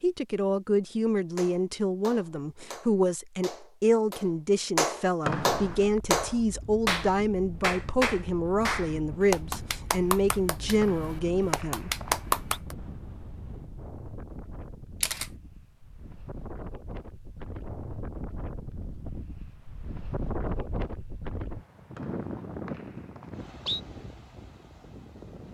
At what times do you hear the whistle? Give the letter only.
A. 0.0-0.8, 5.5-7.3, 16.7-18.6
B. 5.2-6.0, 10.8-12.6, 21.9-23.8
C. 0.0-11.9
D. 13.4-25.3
B.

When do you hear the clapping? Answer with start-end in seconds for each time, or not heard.
1.4-12.8.